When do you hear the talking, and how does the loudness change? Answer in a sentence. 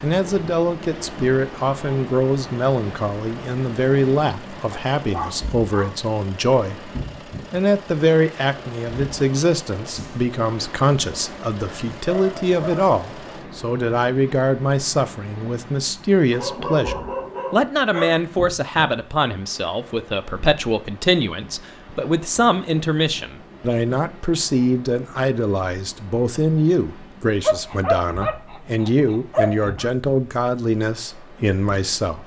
You can hear the talking from 0.0 to 6.9 s, at a steady volume; and from 7.5 to 32.2 s, at a steady volume.